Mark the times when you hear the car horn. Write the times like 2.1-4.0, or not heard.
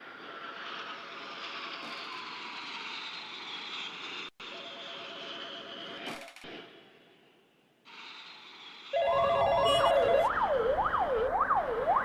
not heard.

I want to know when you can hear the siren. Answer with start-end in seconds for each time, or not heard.
9.0-11.9.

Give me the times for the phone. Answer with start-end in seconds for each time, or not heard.
0.5-2.2, 4.5-6.5, 8.9-10.3.